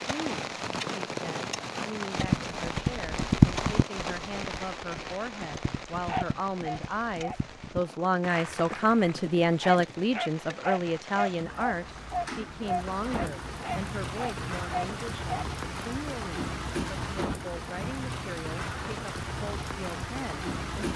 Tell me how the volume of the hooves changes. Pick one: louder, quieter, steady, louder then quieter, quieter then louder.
quieter then louder.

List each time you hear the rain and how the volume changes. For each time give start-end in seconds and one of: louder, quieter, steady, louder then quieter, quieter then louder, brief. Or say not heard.
0.0-20.9 quieter then louder.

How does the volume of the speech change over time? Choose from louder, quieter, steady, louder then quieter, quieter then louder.
louder then quieter.